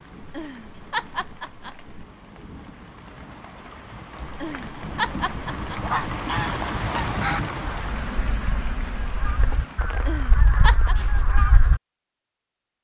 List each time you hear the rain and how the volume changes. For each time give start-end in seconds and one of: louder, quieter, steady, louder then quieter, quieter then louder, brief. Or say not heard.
0.0-10.9 louder then quieter.